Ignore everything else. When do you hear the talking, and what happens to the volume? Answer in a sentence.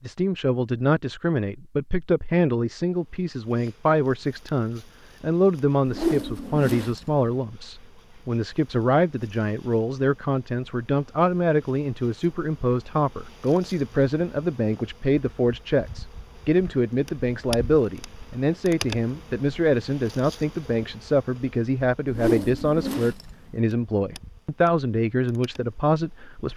You can hear the talking from 0.0 to 26.5 s, at a steady volume.